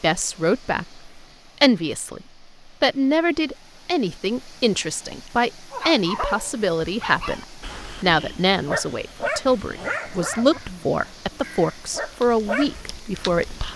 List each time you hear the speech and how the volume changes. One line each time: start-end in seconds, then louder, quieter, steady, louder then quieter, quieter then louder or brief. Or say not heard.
0.0-13.7 steady.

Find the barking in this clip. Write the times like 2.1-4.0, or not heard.
5.7-12.9.